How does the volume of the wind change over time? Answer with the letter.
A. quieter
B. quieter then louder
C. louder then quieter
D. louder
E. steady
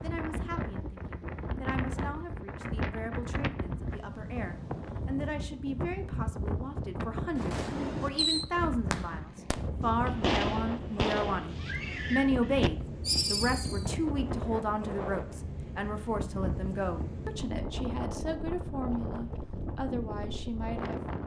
E.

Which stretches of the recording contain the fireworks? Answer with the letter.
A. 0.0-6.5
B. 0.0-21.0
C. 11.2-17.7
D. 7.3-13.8
D.